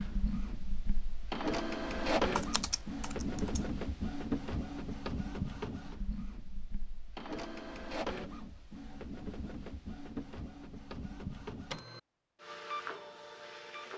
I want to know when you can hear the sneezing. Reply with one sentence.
You can't hear the sneezing here.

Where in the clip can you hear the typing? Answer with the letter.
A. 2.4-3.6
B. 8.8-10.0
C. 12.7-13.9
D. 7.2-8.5
A.